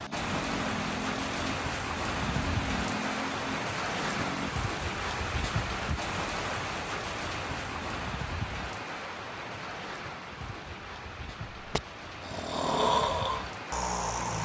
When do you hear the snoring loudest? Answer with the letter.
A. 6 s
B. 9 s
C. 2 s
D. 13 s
D.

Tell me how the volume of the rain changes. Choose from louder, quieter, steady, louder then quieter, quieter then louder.
quieter.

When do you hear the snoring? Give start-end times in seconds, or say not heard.
0.0-4.5, 11.7-14.4.